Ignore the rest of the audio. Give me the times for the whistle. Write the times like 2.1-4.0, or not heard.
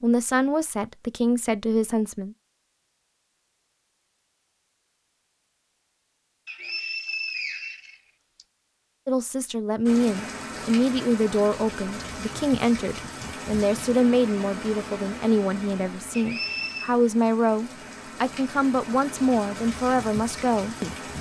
6.5-8.4, 16.1-16.9.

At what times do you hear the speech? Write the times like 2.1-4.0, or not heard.
0.0-2.4, 9.1-20.9.